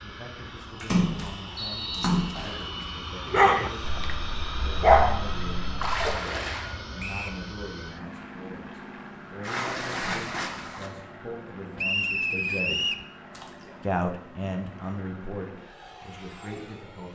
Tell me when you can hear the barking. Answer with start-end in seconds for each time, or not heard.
3.2-6.1.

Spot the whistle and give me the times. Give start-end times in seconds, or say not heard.
1.6-2.6, 7.0-7.4, 11.8-13.1.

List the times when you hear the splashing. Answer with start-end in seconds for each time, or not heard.
0.8-2.6, 5.8-6.8, 9.4-10.9, 13.3-13.8.